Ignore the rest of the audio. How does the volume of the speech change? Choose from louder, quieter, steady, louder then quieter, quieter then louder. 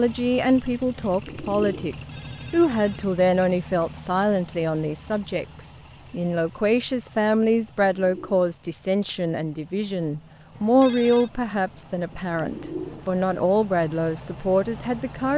steady.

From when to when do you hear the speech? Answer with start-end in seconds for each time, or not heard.
0.0-15.3.